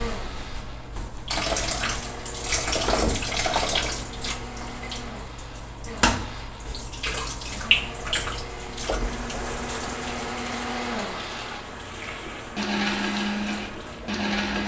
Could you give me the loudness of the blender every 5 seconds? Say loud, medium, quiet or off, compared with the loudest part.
medium, medium, loud.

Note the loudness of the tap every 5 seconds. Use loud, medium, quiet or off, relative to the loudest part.
loud, loud, medium.